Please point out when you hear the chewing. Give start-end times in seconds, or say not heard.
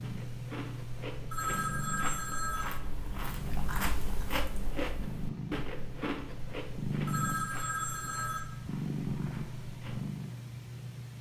0.0-10.1.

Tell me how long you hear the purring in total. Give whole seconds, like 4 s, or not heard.
11 s.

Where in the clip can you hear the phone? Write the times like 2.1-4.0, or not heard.
1.3-2.6, 7.0-8.4.